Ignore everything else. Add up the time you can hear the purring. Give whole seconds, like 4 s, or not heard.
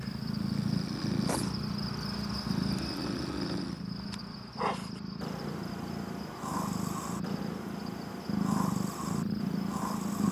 10 s.